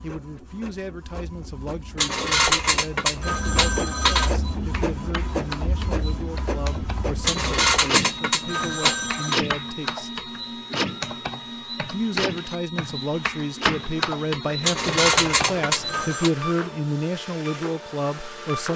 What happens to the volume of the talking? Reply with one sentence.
The loudness of the talking goes up.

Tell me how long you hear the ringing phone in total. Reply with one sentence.
You can hear the ringing phone for 6 seconds altogether.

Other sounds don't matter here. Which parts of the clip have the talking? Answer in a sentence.
The talking can be heard from 0.0 to 10.2 s and from 11.8 to 18.7 s.